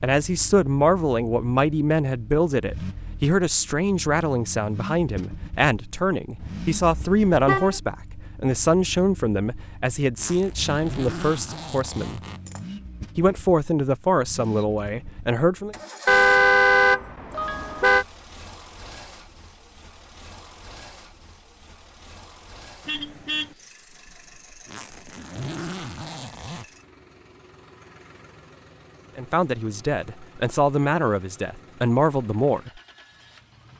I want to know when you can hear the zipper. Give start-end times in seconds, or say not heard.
10.2-12.7, 24.6-26.6.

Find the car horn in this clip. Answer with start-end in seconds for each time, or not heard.
6.4-7.8, 16.1-18.1, 22.9-23.6.